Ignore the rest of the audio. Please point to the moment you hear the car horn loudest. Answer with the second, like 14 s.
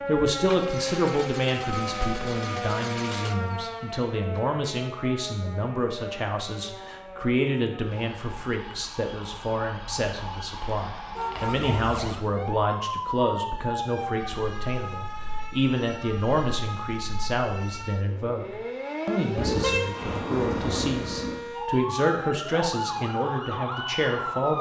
20 s.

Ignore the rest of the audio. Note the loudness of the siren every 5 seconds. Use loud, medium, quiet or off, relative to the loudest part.
loud, medium, loud, loud, loud.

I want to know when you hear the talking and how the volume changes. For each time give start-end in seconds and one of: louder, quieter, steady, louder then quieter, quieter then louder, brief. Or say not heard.
0.1-24.5 steady.